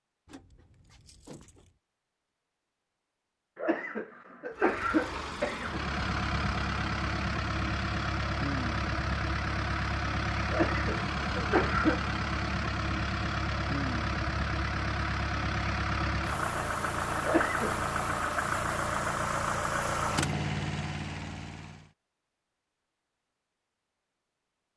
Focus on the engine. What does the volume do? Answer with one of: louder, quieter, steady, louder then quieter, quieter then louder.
steady.